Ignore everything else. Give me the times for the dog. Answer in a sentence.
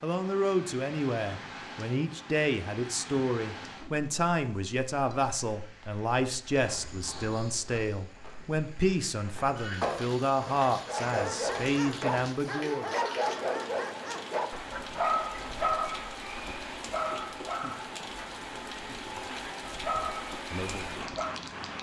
You can hear the dog from 10.8 to 21.4 s.